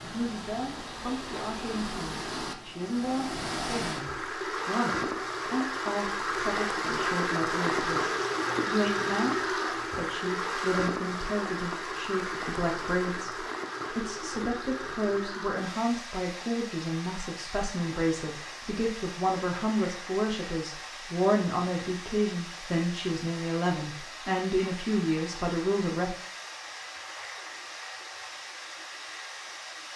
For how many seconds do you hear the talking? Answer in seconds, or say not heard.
26 s.